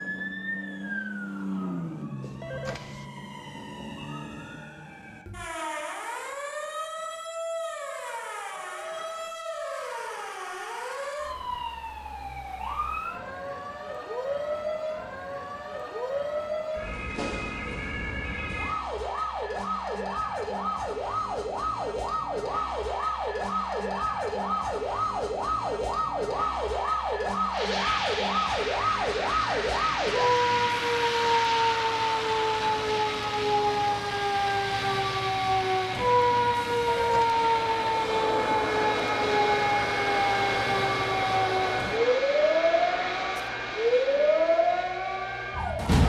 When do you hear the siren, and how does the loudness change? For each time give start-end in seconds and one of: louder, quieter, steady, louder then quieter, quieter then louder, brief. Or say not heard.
0.0-46.0 louder.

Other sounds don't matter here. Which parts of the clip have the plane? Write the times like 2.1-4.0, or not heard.
27.5-46.0.